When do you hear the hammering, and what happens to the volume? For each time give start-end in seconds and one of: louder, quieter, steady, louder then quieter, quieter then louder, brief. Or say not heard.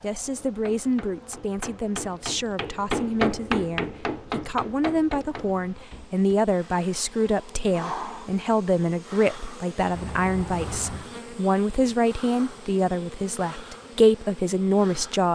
0.3-6.3 louder then quieter.